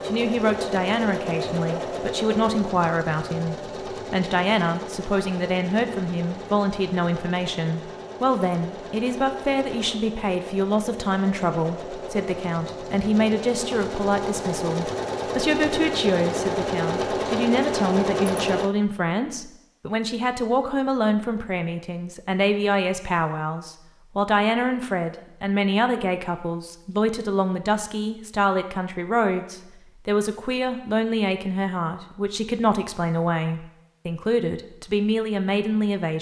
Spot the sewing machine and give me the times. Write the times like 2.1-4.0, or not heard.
0.0-18.7.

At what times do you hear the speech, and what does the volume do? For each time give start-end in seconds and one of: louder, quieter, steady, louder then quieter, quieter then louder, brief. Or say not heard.
0.1-36.1 steady.